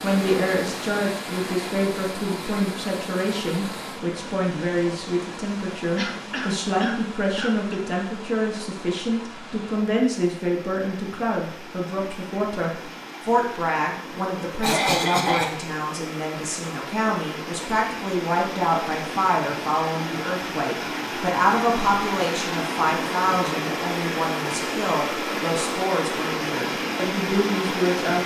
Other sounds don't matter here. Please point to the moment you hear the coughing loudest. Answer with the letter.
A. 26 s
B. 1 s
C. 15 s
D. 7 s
C.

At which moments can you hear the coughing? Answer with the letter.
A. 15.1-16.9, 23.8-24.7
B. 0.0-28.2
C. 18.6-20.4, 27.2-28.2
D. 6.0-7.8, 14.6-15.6
D.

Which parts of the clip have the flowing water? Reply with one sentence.
The flowing water can be heard from 0.0 to 28.2 s.